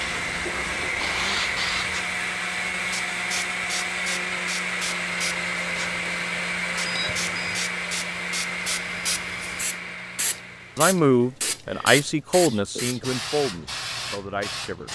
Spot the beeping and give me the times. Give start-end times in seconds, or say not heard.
6.8-7.7.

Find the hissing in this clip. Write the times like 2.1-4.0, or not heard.
0.0-14.9.